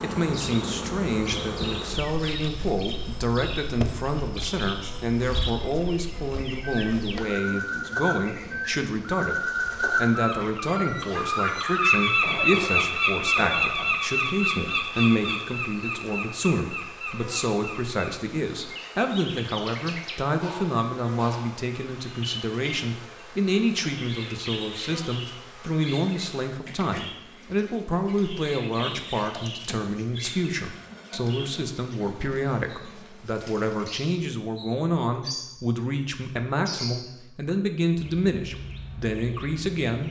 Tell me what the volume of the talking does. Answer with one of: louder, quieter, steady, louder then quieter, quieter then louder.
steady.